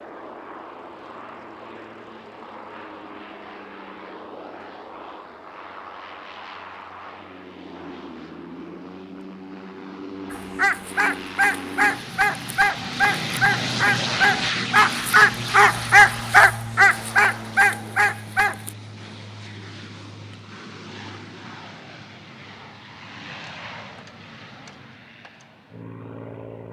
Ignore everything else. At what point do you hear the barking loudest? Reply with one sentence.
The volume of the barking peaks at 16 seconds.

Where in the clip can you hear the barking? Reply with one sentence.
The barking can be heard from 10.3 to 18.7 s.